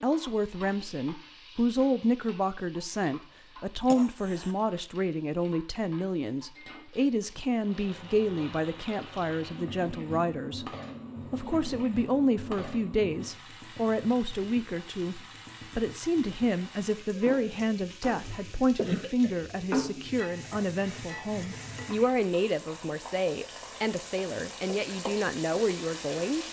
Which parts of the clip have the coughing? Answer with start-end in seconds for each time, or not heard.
3.9-4.5, 18.8-19.4.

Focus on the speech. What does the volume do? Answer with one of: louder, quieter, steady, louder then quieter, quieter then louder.
steady.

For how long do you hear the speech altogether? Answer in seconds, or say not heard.
26 s.